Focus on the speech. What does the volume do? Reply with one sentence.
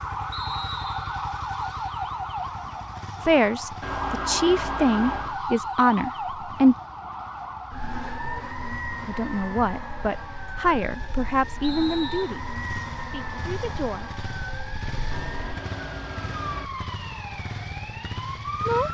The volume of the speech goes down.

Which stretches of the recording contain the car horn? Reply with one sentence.
You can hear the car horn from 3.8 to 5.4 s and from 15.1 to 16.7 s.